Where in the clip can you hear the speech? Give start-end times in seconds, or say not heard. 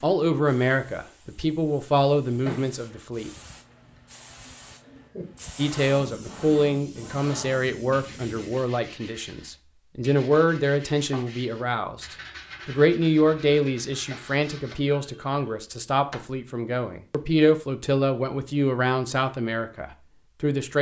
0.0-3.3, 5.5-20.7.